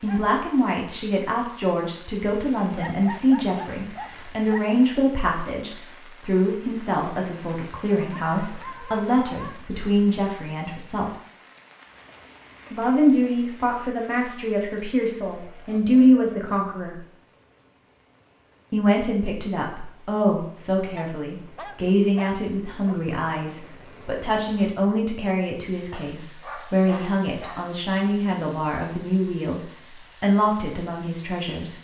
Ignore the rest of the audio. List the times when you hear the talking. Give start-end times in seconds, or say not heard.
0.0-11.1, 12.7-17.0, 18.7-29.6, 30.2-31.7.